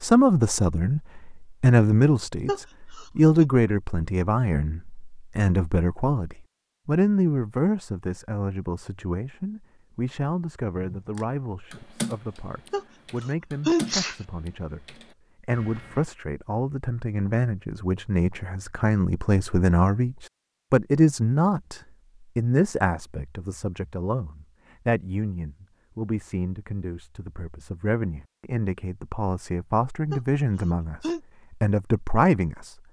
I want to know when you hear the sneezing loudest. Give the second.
14 s.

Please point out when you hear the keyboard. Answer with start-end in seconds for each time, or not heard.
10.8-16.1.